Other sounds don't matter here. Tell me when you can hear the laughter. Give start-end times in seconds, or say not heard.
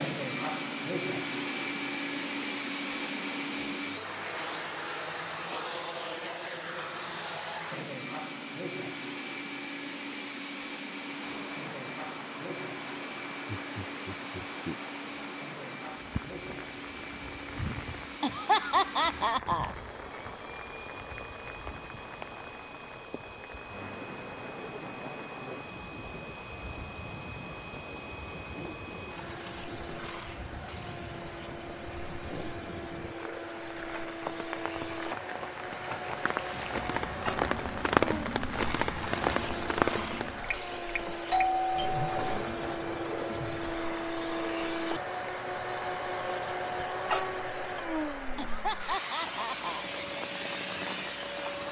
13.4-14.8, 18.2-19.8, 48.4-49.9.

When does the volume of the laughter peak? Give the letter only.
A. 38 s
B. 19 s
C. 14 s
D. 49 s
B.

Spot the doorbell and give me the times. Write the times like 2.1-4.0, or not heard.
41.3-42.4.